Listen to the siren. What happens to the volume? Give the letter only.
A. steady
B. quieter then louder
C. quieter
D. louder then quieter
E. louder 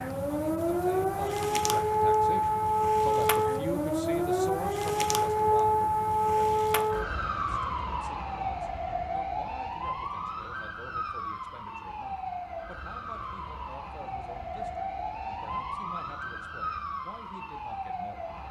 C.